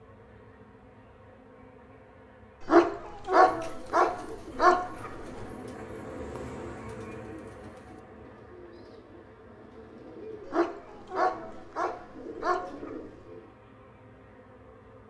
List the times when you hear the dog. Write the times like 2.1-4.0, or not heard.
2.6-5.5, 10.4-13.1.